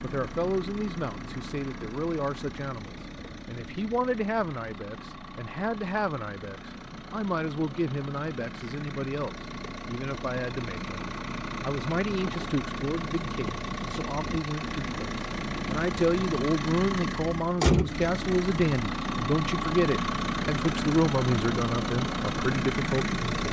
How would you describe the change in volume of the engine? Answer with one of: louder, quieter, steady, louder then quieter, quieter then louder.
louder.